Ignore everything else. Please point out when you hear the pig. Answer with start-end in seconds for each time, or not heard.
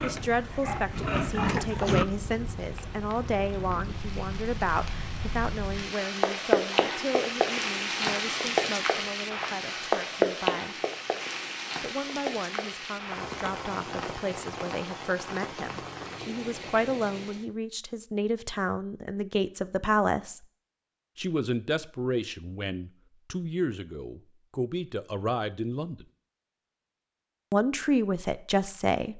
0.0-2.0.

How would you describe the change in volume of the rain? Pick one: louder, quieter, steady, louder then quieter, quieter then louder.
louder then quieter.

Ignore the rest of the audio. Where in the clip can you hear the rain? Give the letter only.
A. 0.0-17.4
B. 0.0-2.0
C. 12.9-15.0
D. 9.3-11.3
A.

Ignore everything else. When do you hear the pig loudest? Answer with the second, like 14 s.
2 s.